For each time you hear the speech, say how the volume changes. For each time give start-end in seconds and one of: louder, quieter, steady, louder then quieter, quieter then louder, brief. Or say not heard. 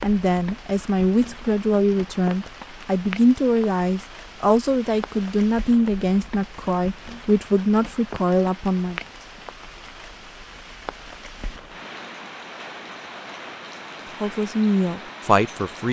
0.0-9.0 steady
14.2-15.8 brief.